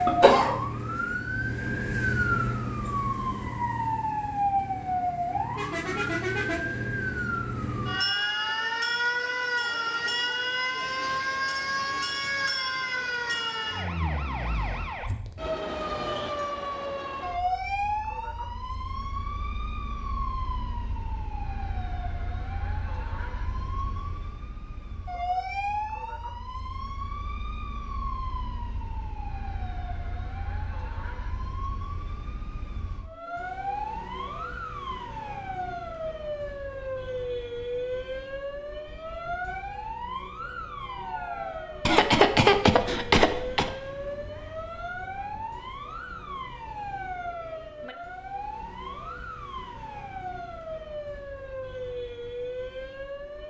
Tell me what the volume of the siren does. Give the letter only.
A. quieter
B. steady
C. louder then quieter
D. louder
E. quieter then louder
A.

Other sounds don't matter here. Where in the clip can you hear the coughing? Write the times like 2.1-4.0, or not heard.
0.1-0.6, 41.9-43.7.